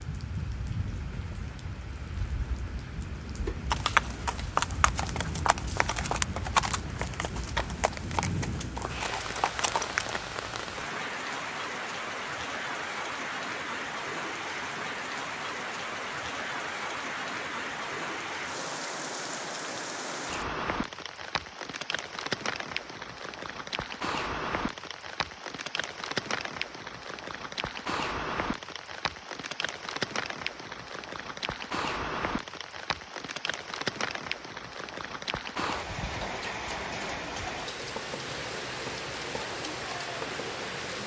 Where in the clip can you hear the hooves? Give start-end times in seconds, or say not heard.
3.7-10.2.